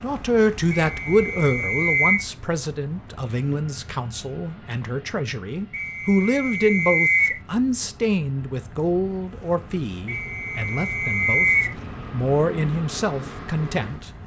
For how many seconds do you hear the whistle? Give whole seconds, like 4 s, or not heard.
5 s.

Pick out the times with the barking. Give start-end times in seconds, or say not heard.
not heard.